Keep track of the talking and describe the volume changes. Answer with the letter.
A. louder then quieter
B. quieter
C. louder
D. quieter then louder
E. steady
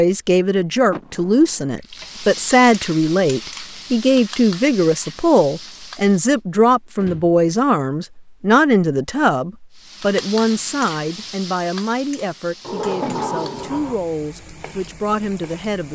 B.